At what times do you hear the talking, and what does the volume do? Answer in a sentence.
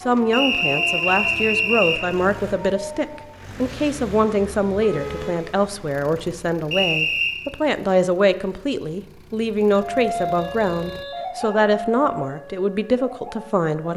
You can hear the talking from 0.0 to 13.9 s, at a steady volume.